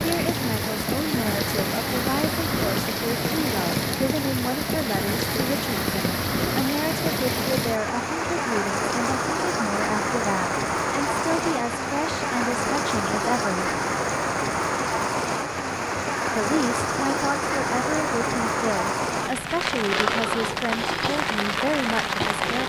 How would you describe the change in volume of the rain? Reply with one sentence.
The volume of the rain stays about the same.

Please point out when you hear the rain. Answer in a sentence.
The rain can be heard from 0.0 to 22.6 s.